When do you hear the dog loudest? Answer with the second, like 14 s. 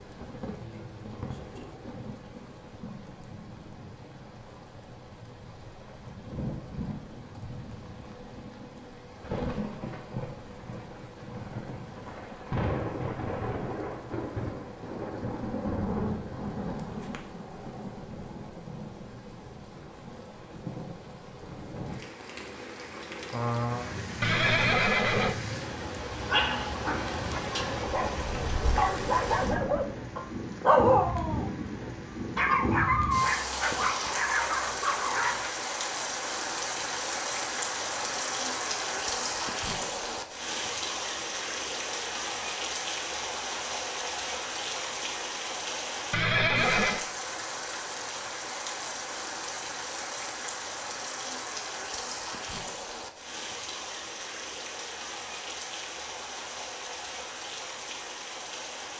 31 s.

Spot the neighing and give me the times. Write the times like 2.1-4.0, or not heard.
24.2-25.4, 46.1-47.0.